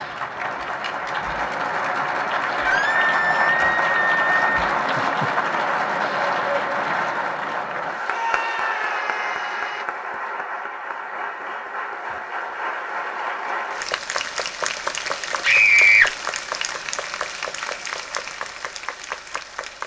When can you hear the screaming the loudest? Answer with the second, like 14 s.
16 s.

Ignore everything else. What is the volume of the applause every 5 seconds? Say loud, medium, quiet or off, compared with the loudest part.
loud, loud, medium, medium.